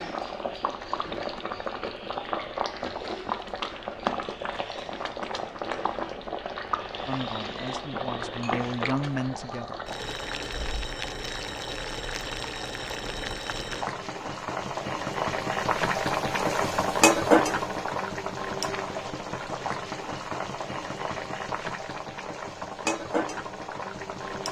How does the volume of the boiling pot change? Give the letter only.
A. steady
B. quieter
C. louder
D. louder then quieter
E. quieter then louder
D.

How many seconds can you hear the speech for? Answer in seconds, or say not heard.
3 s.